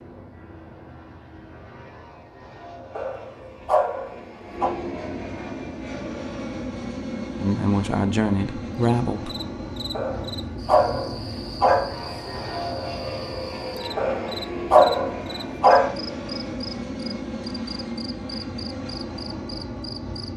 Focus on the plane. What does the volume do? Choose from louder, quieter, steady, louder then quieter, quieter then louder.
louder.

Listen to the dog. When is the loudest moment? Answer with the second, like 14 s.
15 s.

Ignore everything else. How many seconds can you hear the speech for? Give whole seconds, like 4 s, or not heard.
2 s.